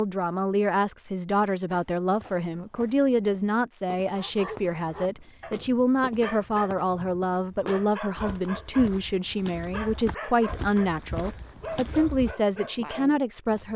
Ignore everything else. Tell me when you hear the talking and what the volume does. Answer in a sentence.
You can hear the talking from 0.0 to 13.7 s, at a steady volume.